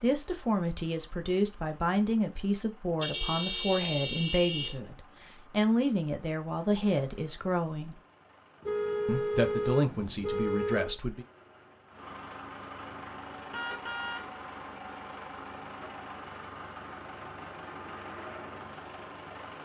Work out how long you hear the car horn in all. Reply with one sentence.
The car horn can be heard for 5 seconds in total.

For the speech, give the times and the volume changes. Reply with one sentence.
You can hear the speech from 0.0 to 8.0 s, at a steady volume; and briefly from 9.1 to 11.2 s.